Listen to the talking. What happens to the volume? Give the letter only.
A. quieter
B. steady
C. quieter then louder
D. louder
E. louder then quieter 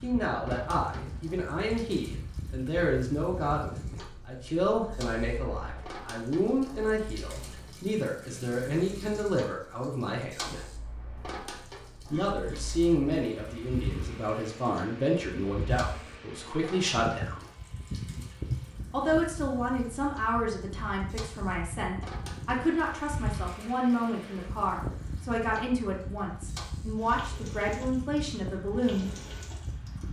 B.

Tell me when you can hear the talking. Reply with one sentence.
You can hear the talking from 0.0 to 10.7 s, from 12.1 to 17.4 s and from 18.9 to 29.1 s.